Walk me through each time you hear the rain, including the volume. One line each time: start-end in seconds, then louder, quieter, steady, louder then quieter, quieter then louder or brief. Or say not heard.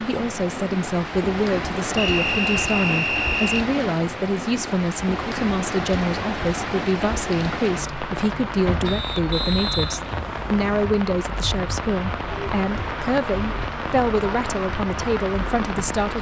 0.0-16.1 steady.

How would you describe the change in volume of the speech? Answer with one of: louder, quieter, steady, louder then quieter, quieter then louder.
steady.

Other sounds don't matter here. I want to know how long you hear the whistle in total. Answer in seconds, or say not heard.
4 s.